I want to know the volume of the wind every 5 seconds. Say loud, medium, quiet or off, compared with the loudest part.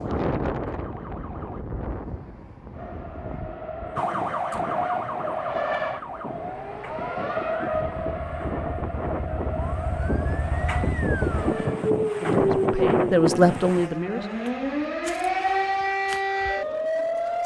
medium, medium, loud, off.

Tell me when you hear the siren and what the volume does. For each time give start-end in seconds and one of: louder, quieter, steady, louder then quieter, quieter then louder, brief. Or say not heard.
0.0-1.6 brief
4.0-17.4 quieter then louder.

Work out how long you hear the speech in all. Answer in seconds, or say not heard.
2 s.